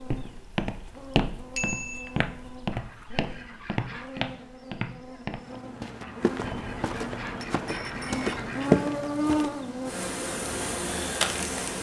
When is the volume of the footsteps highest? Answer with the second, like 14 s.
9 s.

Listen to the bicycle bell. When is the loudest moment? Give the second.
2 s.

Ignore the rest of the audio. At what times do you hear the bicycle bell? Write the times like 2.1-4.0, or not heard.
1.6-2.1, 6.4-8.4.